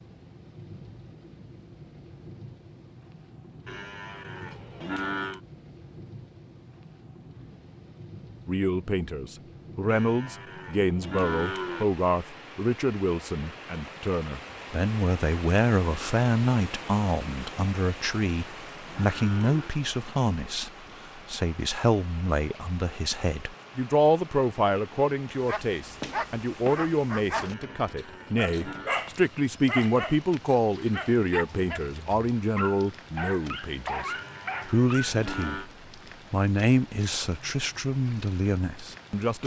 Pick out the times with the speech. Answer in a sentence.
The speech can be heard from 8.4 to 35.7 s and from 36.3 to 39.4 s.